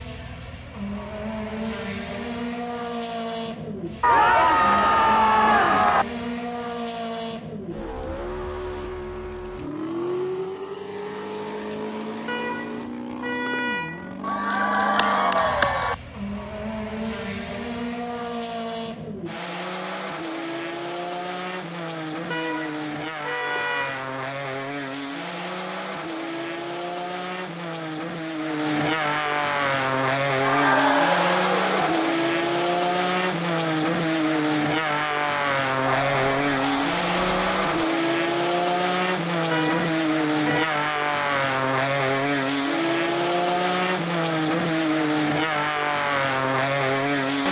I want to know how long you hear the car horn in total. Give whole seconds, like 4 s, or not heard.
5 s.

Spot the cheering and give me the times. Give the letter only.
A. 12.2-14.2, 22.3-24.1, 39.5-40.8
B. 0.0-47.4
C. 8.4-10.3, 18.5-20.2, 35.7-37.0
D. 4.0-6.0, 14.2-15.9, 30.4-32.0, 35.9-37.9
D.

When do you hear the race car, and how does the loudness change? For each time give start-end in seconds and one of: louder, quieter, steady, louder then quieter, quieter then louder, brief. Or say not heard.
0.0-47.4 louder.